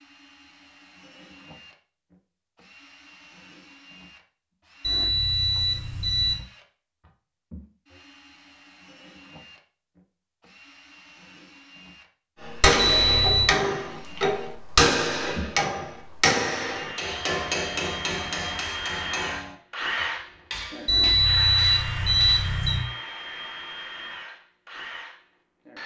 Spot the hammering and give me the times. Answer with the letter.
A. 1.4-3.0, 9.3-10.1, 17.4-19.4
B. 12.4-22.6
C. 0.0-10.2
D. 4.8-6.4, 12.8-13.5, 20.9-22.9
B.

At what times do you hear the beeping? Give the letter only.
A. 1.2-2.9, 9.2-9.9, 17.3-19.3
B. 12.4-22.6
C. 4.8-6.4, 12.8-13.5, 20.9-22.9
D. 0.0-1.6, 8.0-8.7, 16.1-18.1
C.